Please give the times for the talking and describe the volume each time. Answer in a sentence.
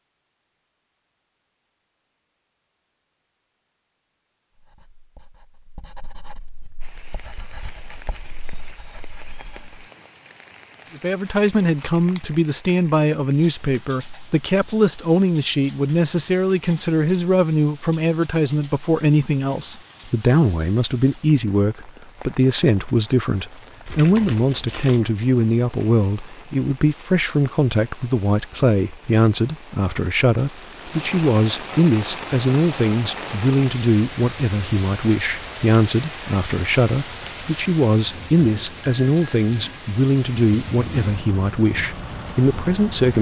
You can hear the talking from 10.9 to 43.1 s, at a steady volume.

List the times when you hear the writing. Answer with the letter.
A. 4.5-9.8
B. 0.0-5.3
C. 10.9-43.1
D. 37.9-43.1
A.